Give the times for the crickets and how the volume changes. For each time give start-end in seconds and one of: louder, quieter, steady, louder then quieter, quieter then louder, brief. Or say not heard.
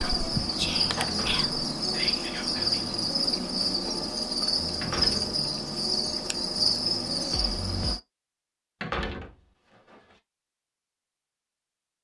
0.0-8.0 steady.